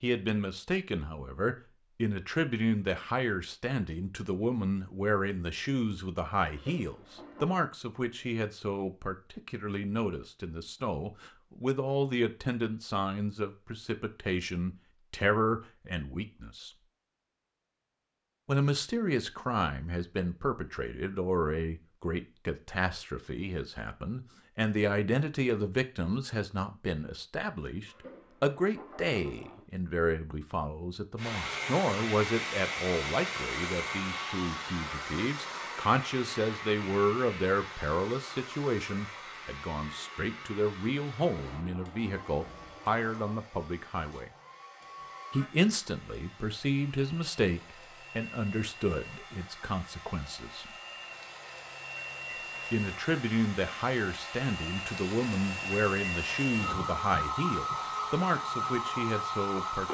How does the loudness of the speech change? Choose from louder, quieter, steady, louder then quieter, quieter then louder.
steady.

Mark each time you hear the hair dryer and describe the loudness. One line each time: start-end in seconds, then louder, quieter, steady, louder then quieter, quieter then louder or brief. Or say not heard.
31.1-59.9 quieter then louder.